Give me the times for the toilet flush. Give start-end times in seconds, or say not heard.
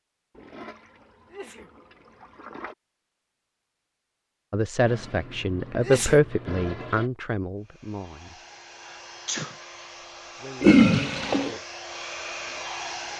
0.3-2.8, 4.8-7.1, 10.6-11.6.